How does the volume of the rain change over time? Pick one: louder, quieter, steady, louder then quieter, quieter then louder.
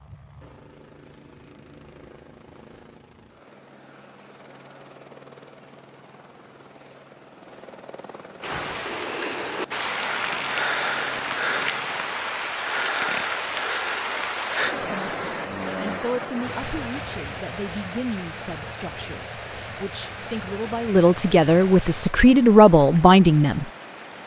quieter.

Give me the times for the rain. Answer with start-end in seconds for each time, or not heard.
8.4-24.2.